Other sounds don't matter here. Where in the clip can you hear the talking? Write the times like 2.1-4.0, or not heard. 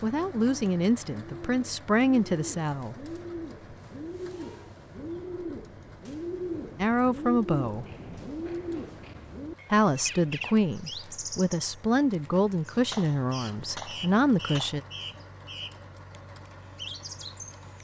0.0-3.0, 6.8-7.8, 9.7-14.8.